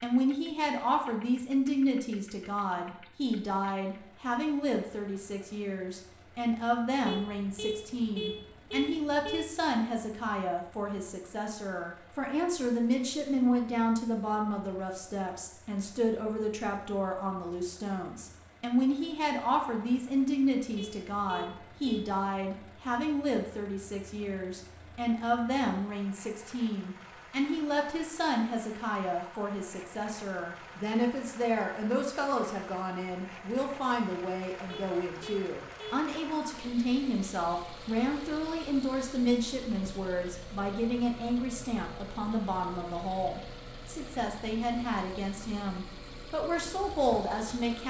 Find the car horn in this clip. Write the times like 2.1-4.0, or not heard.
7.0-9.4, 20.7-22.1, 34.6-36.0.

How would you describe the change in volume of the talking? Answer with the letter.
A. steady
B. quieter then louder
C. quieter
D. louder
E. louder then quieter
A.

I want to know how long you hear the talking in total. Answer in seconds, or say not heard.
48 s.